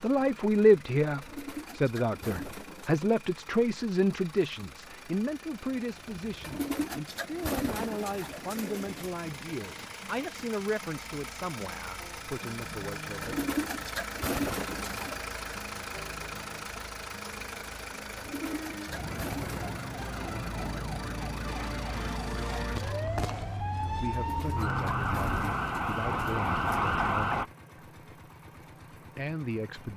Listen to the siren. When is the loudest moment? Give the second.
27 s.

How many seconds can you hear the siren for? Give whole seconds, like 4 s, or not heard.
9 s.